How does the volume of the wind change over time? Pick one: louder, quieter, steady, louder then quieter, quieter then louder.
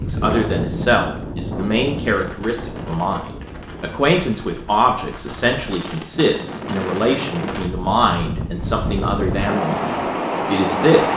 quieter then louder.